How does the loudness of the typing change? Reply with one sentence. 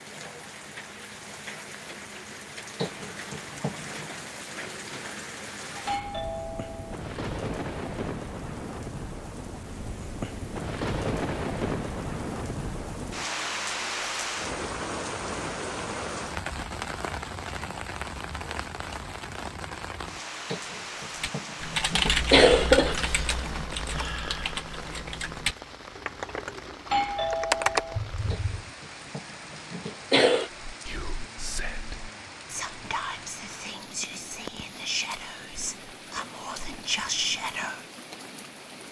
The loudness of the typing goes down, then up.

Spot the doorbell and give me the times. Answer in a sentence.
The doorbell can be heard from 5.8 to 7.0 s and from 26.9 to 28.0 s.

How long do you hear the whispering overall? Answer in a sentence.
You can hear the whispering for 7 seconds altogether.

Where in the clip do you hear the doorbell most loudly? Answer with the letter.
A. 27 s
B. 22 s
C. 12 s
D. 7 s
A.